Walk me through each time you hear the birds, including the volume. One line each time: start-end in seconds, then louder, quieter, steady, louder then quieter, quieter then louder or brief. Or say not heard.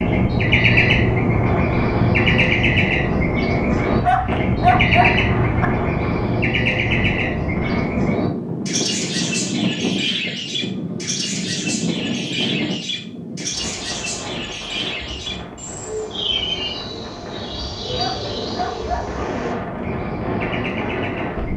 0.0-21.5 quieter.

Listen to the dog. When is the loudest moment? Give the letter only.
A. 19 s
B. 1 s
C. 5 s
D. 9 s
C.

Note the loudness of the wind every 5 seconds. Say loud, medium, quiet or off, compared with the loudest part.
loud, loud, loud, medium, loud.